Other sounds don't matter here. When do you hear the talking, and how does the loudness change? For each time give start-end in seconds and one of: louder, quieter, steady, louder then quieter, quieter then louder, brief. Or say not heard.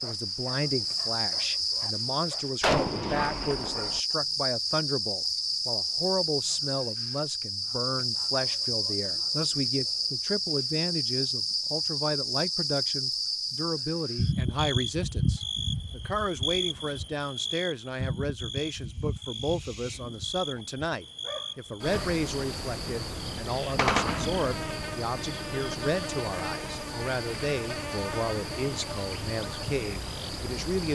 0.0-30.9 steady.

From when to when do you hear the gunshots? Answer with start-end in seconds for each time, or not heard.
2.6-4.0, 23.8-24.8.